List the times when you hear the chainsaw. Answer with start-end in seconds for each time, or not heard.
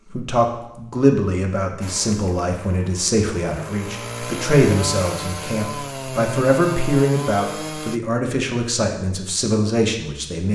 1.8-8.0.